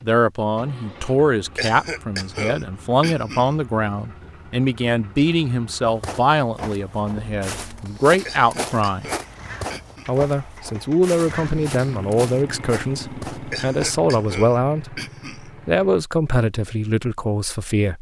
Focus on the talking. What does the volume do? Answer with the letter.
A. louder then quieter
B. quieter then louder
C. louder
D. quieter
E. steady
E.